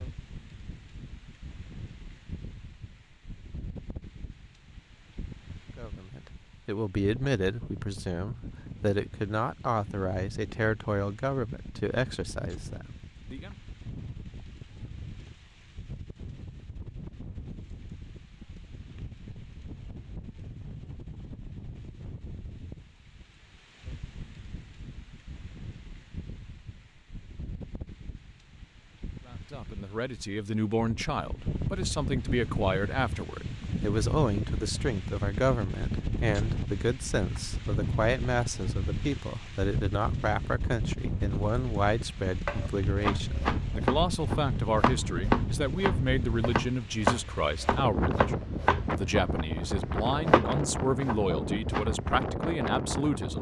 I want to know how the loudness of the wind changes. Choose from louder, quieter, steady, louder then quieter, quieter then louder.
louder.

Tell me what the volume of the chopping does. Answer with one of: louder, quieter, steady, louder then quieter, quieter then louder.
steady.